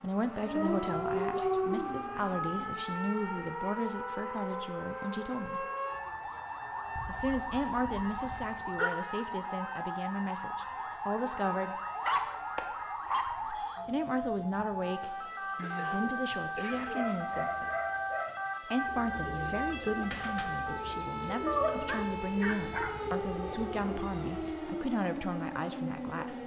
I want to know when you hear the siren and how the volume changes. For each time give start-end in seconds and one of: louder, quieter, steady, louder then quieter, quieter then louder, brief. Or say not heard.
0.0-26.4 steady.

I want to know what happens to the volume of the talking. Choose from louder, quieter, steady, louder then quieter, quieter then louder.
steady.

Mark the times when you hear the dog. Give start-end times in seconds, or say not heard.
0.4-2.8, 7.0-8.9, 12.0-13.7, 16.7-18.4, 21.4-23.2.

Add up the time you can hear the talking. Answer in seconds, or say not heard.
22 s.